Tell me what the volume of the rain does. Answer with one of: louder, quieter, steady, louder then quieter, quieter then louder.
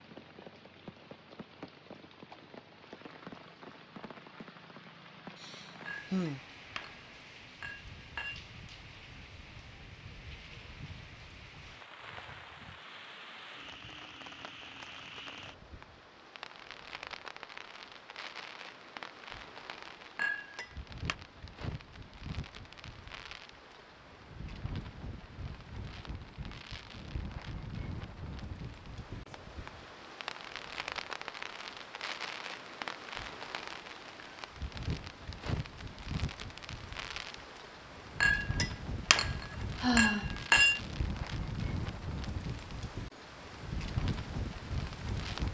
louder.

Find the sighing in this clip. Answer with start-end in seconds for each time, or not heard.
5.3-6.4, 39.8-40.3.